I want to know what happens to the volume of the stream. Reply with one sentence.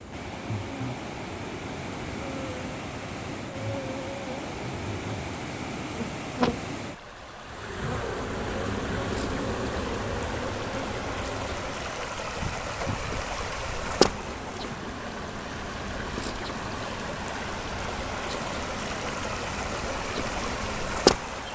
The loudness of the stream goes up.